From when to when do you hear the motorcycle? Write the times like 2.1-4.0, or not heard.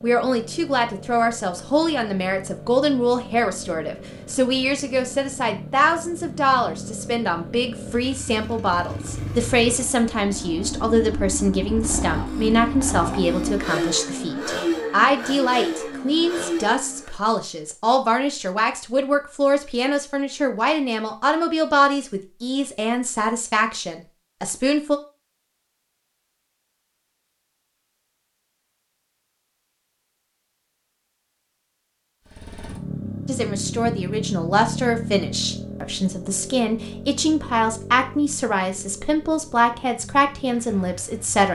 0.0-17.2, 32.2-41.5.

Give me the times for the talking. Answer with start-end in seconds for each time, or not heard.
0.0-25.0, 33.2-41.5.